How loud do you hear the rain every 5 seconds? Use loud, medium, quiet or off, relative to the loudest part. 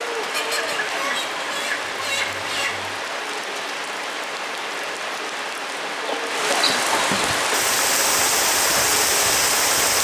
medium, loud.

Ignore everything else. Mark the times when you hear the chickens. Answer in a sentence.
The chickens can be heard from 0.2 to 3.0 s and from 6.0 to 7.6 s.